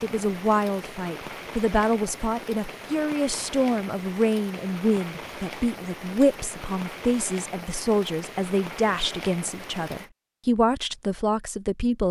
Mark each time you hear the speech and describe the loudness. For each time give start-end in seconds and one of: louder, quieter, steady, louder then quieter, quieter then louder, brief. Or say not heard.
0.0-12.0 steady.